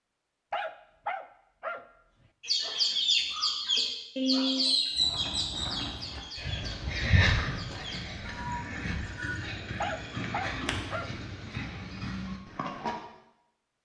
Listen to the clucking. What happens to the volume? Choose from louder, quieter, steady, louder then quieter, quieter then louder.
quieter.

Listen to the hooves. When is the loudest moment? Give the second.
7 s.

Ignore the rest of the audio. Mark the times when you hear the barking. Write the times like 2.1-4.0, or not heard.
0.5-1.9, 9.8-11.1.